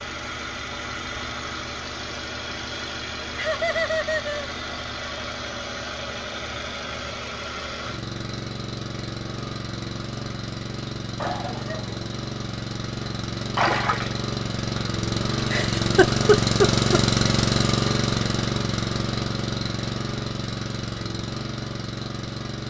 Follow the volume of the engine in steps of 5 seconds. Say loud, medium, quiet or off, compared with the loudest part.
medium, medium, medium, loud, medium.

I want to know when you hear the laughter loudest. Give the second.
16 s.